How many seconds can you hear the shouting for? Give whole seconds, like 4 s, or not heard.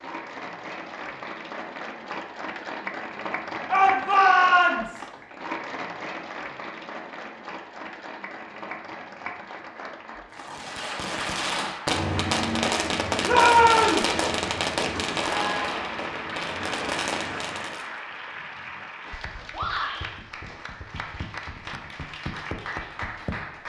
3 s.